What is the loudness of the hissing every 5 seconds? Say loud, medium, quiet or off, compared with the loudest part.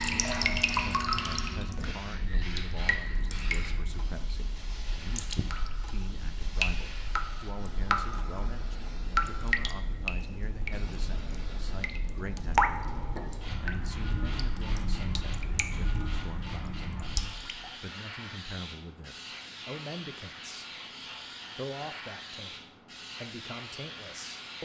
loud, medium, loud, loud, loud.